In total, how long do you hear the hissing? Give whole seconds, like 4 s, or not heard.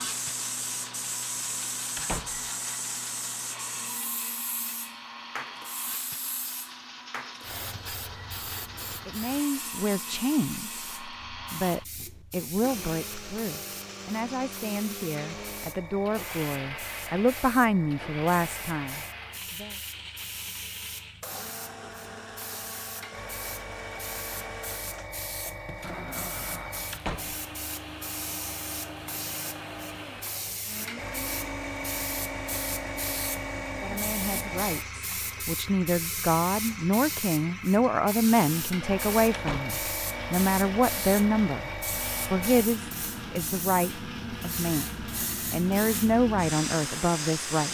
48 s.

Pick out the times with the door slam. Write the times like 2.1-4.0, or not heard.
1.9-2.5, 26.9-27.4, 39.3-39.8.